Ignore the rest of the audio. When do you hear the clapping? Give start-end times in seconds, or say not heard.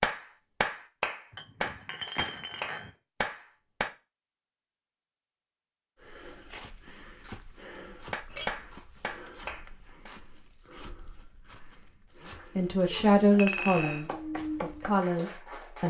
0.0-3.9, 8.1-10.1, 12.2-15.8.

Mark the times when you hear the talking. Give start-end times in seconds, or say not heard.
12.6-15.8.